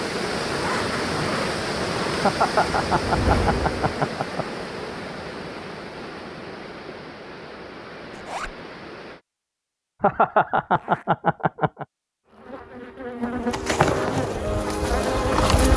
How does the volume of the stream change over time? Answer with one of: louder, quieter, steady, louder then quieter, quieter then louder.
quieter.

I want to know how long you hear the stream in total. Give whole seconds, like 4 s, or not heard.
9 s.